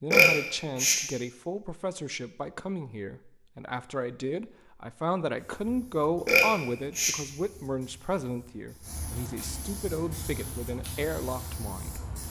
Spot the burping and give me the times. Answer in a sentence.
You can hear the burping from 0.1 to 0.9 s and from 6.2 to 7.1 s.